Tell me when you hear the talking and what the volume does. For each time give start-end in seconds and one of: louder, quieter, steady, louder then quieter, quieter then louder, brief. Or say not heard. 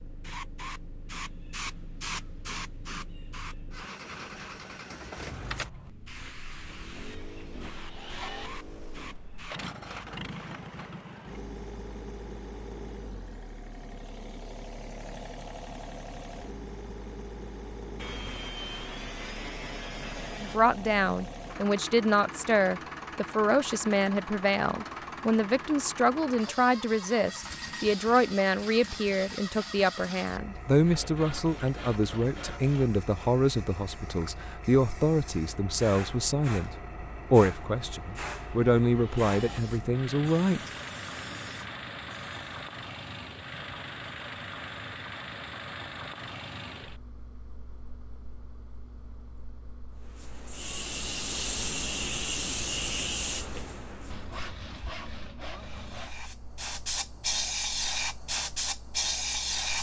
20.4-40.6 steady.